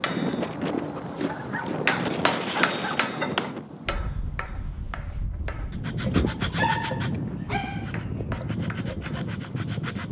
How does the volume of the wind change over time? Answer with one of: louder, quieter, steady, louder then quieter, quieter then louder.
quieter then louder.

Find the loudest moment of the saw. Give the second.
6 s.